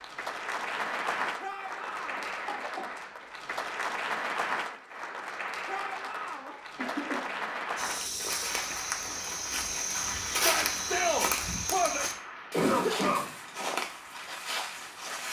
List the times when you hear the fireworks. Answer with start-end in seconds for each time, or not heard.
not heard.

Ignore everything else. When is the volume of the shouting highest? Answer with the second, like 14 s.
11 s.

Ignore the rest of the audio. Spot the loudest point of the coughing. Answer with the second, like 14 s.
13 s.